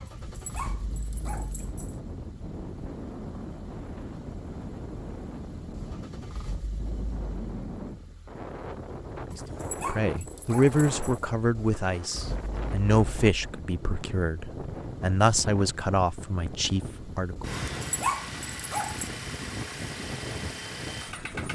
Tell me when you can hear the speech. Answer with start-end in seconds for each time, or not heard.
9.3-17.6.